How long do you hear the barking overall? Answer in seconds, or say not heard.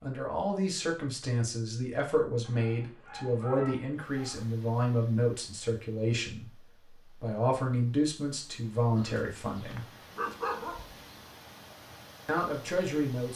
4 s.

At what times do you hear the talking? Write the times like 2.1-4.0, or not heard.
0.0-9.8, 12.2-13.3.